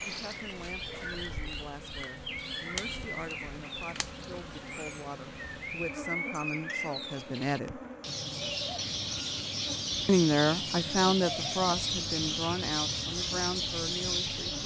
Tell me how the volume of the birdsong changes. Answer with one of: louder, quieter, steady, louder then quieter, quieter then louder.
louder.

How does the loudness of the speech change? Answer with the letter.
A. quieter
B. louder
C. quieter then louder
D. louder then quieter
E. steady
D.